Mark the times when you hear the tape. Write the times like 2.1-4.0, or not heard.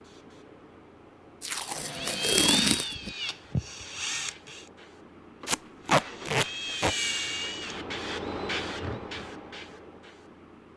1.4-3.1, 5.5-7.0.